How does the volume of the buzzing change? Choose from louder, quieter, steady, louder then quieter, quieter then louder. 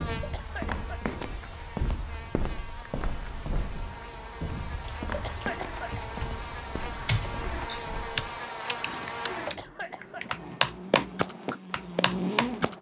louder.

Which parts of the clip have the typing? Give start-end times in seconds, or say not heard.
3.2-12.7.